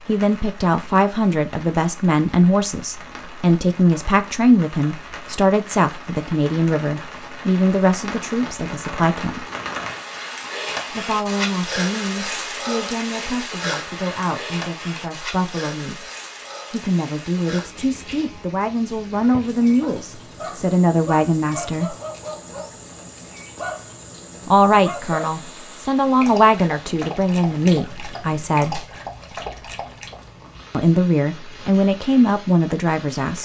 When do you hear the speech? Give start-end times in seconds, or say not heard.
0.1-9.4, 10.9-16.1, 16.7-21.9, 24.4-28.9, 30.7-33.4.